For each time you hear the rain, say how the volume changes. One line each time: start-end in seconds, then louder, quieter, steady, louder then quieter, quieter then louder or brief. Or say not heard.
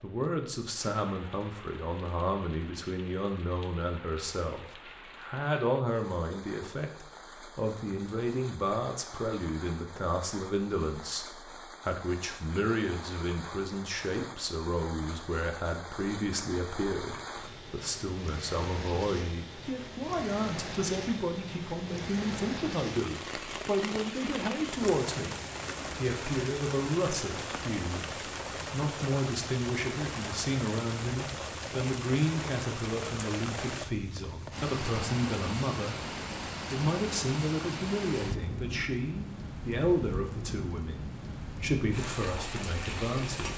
0.0-43.5 louder.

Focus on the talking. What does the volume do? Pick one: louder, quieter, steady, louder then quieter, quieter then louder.
steady.